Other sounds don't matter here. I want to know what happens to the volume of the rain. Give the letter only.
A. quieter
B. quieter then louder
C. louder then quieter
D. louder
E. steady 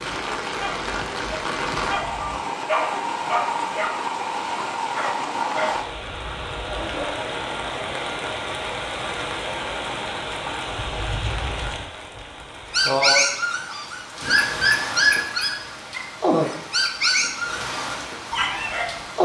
E.